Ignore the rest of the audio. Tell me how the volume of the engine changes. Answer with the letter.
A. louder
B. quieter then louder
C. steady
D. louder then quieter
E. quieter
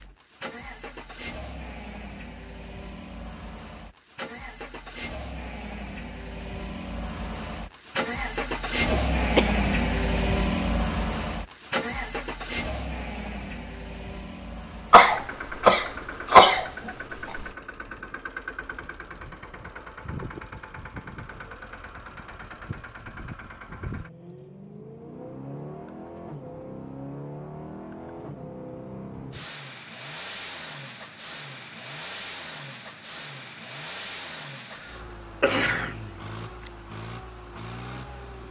D.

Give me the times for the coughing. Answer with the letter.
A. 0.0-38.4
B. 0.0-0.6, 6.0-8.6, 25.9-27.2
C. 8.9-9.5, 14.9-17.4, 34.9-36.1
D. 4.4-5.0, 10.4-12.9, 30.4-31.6
C.